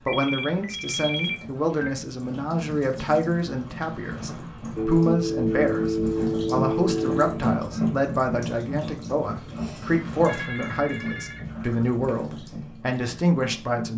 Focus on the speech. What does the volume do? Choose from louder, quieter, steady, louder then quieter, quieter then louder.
steady.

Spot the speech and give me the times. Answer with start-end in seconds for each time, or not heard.
0.1-13.9.